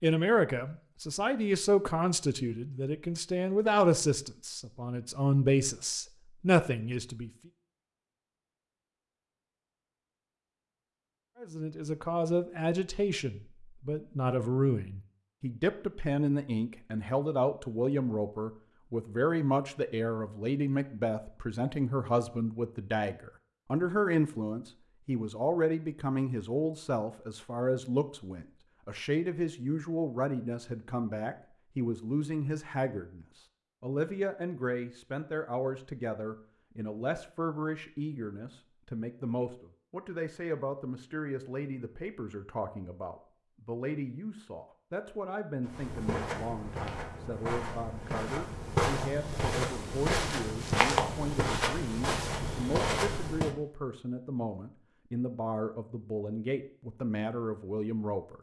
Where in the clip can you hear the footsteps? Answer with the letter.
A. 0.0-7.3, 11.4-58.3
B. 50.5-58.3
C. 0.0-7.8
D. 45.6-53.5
D.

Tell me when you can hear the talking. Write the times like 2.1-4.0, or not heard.
0.0-7.3, 11.4-58.3.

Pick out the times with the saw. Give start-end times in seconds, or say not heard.
not heard.